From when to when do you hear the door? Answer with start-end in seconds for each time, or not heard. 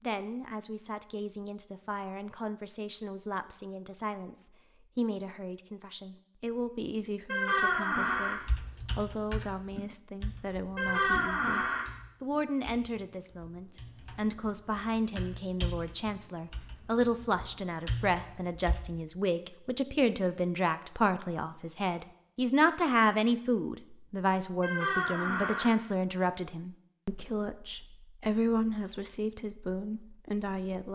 7.2-8.4, 10.8-11.8, 24.6-25.7.